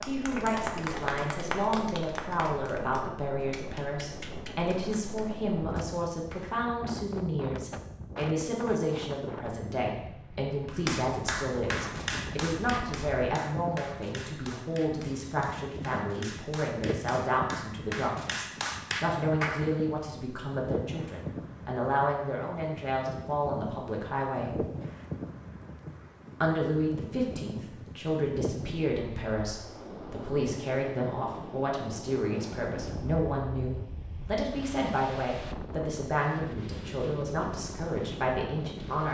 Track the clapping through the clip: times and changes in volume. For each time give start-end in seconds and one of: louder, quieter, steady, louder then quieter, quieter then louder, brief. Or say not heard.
0.0-6.5 quieter
10.8-19.6 quieter then louder.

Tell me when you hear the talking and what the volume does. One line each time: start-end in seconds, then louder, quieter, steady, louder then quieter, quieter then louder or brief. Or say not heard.
0.1-24.6 steady
26.4-39.0 steady.